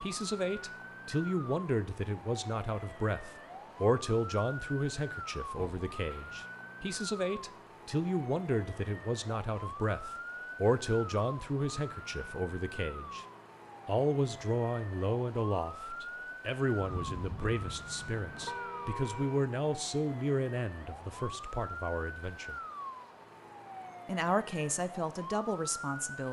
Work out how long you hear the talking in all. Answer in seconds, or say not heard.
24 s.